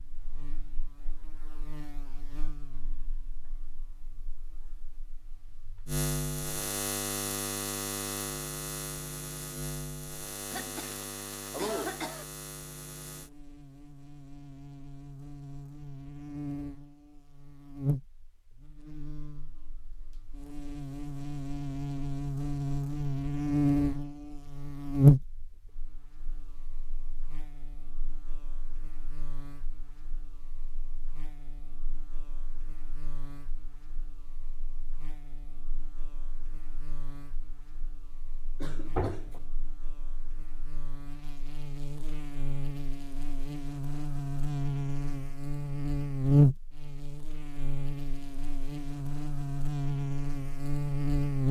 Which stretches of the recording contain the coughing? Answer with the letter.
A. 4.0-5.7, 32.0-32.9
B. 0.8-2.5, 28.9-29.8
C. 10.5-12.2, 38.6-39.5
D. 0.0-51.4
C.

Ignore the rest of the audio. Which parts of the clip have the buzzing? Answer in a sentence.
You can hear the buzzing from 0.0 to 51.4 s.